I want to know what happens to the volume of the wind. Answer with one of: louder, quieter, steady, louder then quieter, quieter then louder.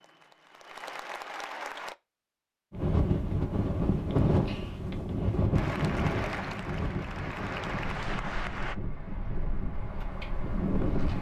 quieter.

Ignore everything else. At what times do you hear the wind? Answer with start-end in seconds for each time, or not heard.
2.7-11.1.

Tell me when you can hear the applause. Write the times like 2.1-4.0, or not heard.
0.0-1.9, 5.5-8.8.